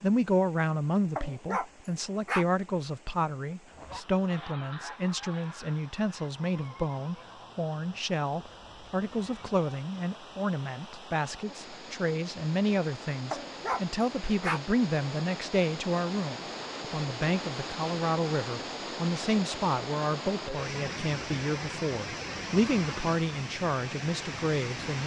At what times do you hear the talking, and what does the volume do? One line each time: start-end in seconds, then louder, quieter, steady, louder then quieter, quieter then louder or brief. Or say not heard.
0.0-25.0 steady.